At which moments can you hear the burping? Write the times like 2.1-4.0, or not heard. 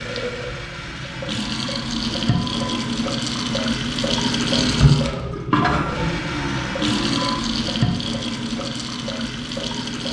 0.8-2.8, 5.7-7.5.